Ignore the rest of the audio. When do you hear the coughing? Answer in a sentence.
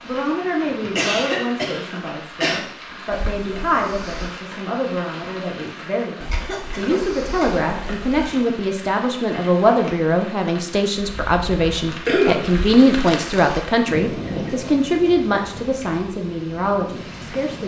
You can hear the coughing from 0.8 to 2.6 s, from 6.3 to 7.7 s and from 12.1 to 12.5 s.